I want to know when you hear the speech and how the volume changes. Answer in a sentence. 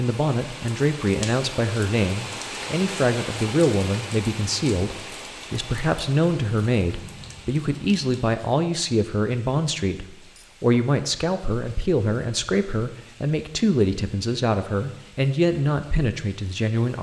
The speech can be heard from 0.0 to 16.9 s, at a steady volume.